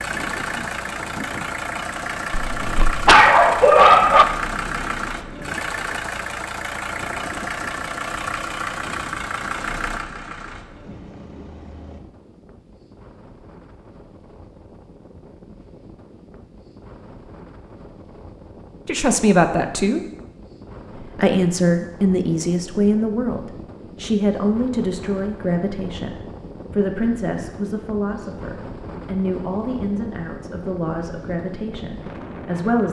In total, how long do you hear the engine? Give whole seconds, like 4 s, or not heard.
12 s.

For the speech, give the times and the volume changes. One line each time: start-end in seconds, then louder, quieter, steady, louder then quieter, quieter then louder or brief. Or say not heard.
18.9-20.1 brief
21.1-32.8 quieter.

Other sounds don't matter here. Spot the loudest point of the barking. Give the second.
4 s.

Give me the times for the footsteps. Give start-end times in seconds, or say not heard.
not heard.